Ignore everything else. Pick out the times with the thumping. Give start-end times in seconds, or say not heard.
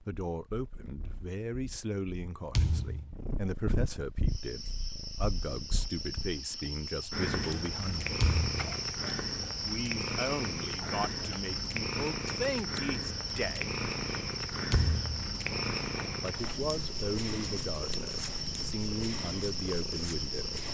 2.5-3.1, 8.2-8.7, 14.7-15.2.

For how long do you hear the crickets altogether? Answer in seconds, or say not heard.
16 s.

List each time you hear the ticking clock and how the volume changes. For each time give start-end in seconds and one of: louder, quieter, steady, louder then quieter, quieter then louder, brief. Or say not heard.
not heard.